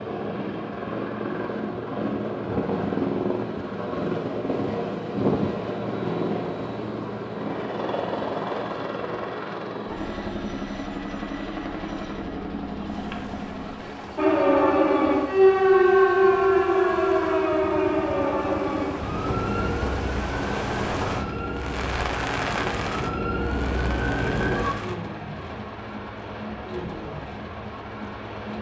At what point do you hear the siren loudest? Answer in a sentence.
The volume of the siren peaks at 16 seconds.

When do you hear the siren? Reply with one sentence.
The siren can be heard from 14.2 to 24.8 s.